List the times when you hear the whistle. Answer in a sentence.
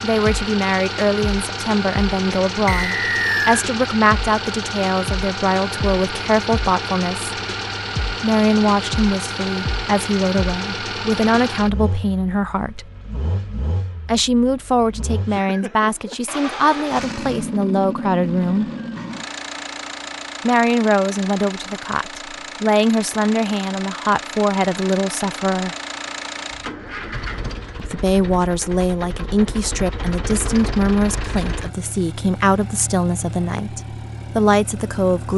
The whistle can be heard from 2.6 to 3.6 s.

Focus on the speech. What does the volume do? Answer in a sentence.
The loudness of the speech stays about the same.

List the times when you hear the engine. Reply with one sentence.
You can hear the engine from 0.0 to 35.3 s.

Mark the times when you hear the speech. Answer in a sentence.
You can hear the speech from 0.0 to 7.3 s, from 8.2 to 12.9 s, from 14.1 to 18.6 s, from 20.4 to 25.8 s and from 27.8 to 35.3 s.